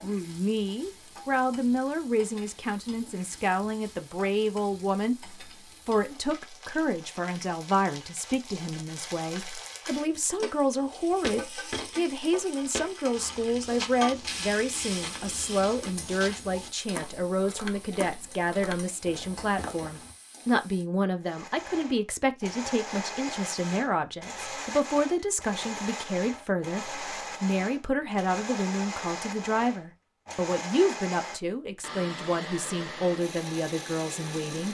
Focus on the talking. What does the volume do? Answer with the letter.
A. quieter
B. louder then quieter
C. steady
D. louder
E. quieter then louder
C.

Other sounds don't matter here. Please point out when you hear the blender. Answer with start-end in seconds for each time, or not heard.
21.2-34.6.